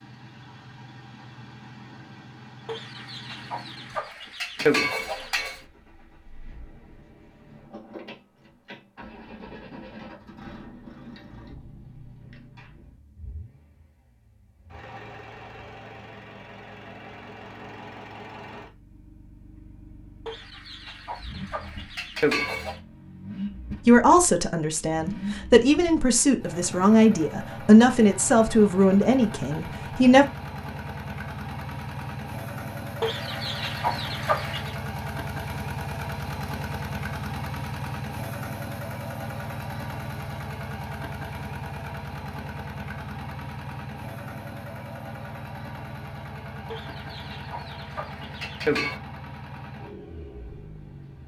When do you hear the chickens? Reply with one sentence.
The chickens can be heard from 2.6 to 5.6 s, from 20.2 to 22.8 s, from 33.0 to 34.8 s and from 46.7 to 49.0 s.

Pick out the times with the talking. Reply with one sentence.
You can hear the talking from 23.9 to 30.2 s.